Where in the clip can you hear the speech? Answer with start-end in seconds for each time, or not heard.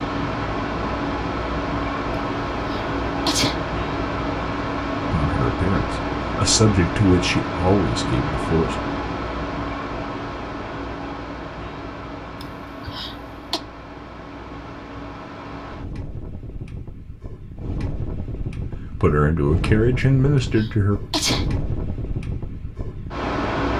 5.1-8.9, 18.9-21.0.